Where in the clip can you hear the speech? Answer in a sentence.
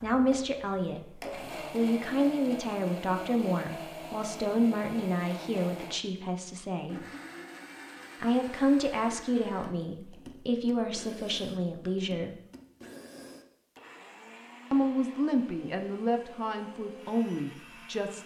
You can hear the speech from 0.0 to 7.0 s, from 8.2 to 12.3 s and from 14.7 to 18.2 s.